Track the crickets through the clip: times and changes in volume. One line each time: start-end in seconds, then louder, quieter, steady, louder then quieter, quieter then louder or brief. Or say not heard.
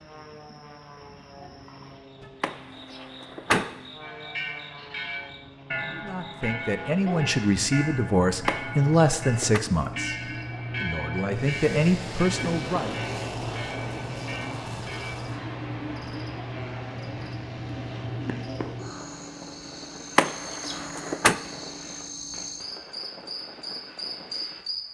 0.0-24.8 louder.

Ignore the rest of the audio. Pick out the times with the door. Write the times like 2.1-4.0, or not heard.
2.4-3.7, 8.4-9.6, 20.1-21.4.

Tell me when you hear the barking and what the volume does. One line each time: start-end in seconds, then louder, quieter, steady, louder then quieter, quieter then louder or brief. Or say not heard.
not heard.